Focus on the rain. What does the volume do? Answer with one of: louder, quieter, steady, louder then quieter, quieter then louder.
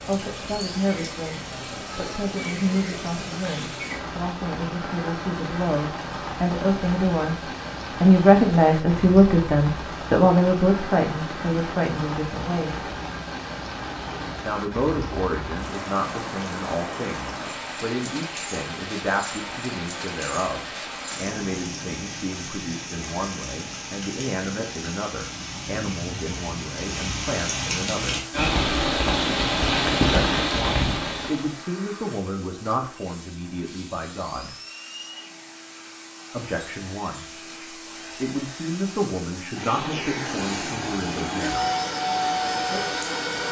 louder.